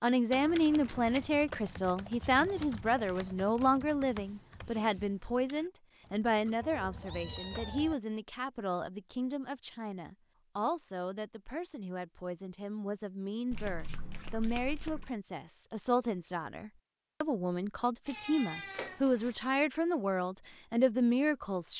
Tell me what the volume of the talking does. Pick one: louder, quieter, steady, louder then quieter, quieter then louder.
quieter then louder.